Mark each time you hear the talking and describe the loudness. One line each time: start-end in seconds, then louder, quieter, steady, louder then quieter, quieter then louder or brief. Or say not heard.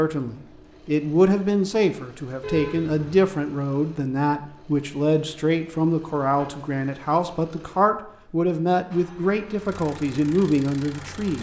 0.0-11.3 steady.